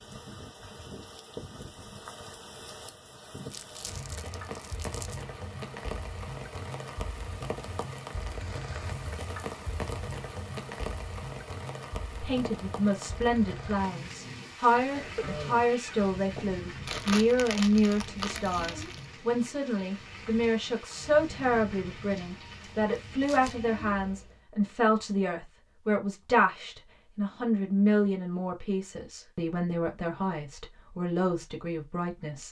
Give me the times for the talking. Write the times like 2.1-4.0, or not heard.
12.2-32.4.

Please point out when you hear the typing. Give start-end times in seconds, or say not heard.
not heard.